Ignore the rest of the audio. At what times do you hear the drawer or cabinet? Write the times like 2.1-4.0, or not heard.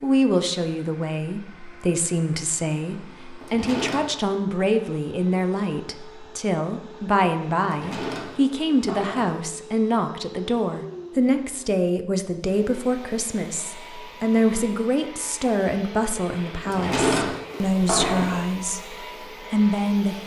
3.4-4.3, 7.6-9.4, 16.6-18.4.